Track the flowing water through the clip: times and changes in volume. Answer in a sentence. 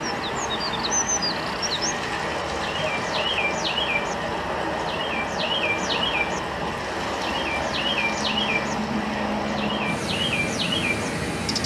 The flowing water can be heard from 0.0 to 11.6 s, at a steady volume.